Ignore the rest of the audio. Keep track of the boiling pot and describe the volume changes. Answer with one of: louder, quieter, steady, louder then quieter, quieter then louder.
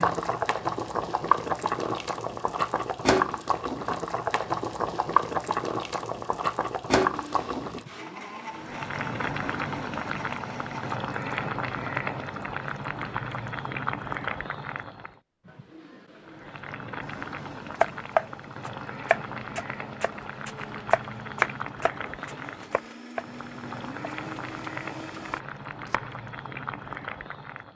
quieter.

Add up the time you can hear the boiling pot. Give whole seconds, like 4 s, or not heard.
28 s.